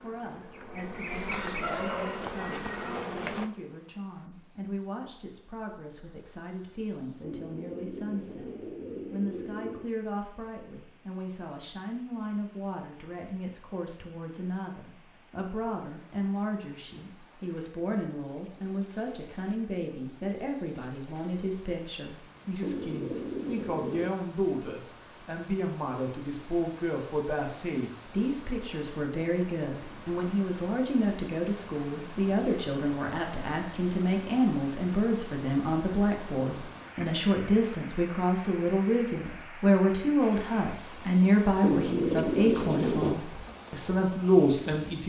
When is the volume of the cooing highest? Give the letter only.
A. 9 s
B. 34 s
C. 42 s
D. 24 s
C.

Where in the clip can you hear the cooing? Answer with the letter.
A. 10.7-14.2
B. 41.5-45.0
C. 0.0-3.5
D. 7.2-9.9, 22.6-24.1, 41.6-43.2
D.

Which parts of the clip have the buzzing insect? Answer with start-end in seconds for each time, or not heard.
0.0-3.5.